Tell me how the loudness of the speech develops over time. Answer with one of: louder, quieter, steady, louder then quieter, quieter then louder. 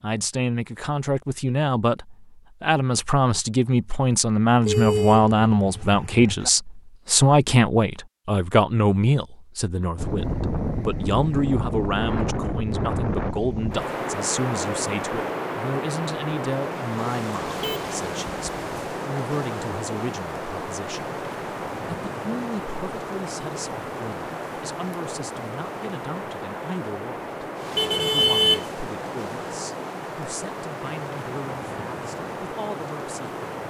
quieter.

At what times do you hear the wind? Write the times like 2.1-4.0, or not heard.
9.9-33.6.